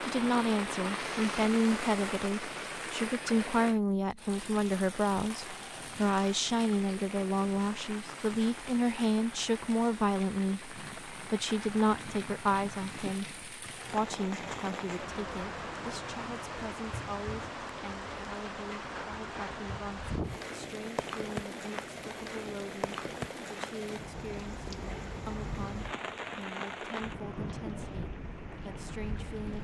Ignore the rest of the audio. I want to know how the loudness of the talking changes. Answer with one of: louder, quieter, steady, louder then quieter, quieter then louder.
quieter.